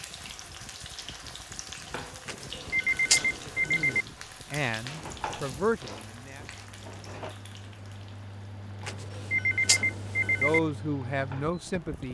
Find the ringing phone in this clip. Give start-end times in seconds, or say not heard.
2.2-4.0, 8.8-10.6.